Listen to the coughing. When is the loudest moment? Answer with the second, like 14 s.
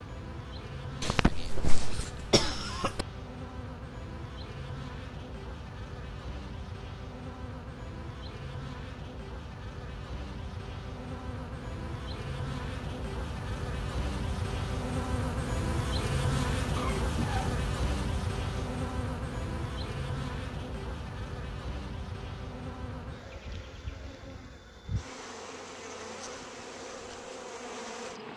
2 s.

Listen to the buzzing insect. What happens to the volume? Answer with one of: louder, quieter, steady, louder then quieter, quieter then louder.
louder then quieter.